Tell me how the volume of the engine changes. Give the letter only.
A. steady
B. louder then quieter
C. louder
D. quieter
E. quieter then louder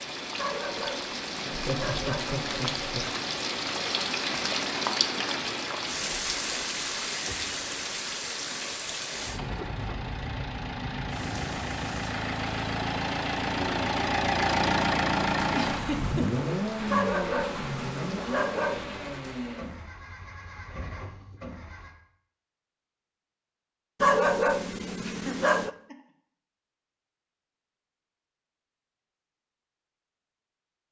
B.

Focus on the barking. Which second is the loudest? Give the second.
24 s.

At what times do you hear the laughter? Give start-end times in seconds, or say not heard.
1.4-3.1, 15.5-16.2, 25.1-25.9.